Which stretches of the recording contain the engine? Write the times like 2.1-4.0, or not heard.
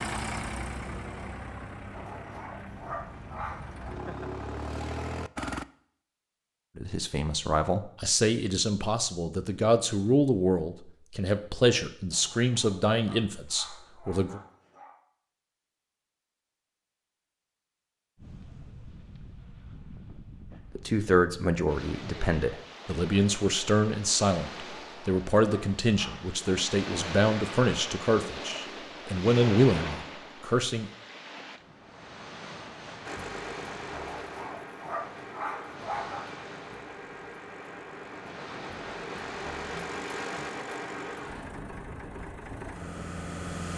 0.0-5.7, 33.0-43.7.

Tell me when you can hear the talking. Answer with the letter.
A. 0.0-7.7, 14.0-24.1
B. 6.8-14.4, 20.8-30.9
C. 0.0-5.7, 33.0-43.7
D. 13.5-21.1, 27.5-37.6
B.